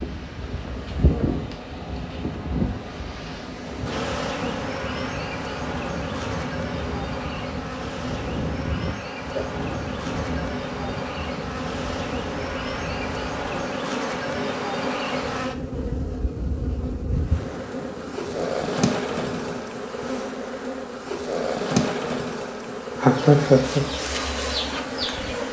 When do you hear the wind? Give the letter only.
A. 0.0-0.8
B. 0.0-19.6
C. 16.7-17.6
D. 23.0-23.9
B.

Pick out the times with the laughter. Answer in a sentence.
The laughter can be heard from 23.0 to 23.9 s.